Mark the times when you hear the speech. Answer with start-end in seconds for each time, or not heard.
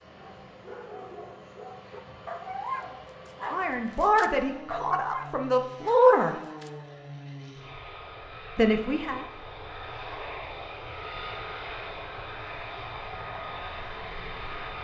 3.5-6.3, 8.6-9.2.